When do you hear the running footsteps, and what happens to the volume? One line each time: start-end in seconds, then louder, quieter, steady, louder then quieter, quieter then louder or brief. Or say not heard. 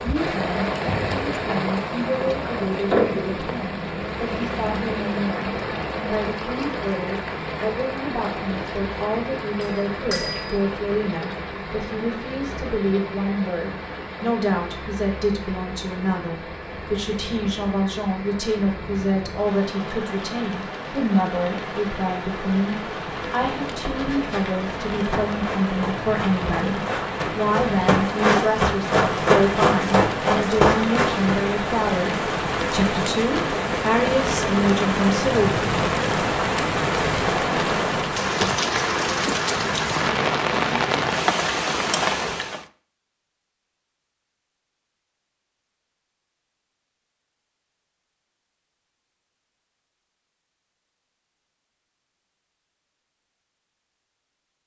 23.9-31.4 louder.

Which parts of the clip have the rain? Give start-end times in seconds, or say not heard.
0.0-42.6.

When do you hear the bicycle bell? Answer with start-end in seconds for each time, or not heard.
9.6-10.6.